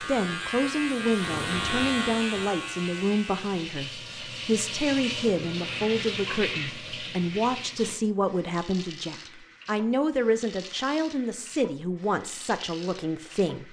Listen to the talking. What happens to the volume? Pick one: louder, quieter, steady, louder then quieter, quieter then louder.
steady.